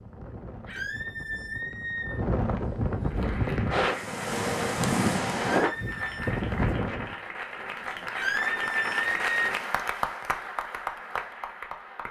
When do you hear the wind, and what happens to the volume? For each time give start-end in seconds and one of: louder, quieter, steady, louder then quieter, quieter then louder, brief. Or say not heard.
0.0-7.2 louder.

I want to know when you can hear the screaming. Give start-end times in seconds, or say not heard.
0.7-2.2, 5.4-6.4, 8.1-9.6.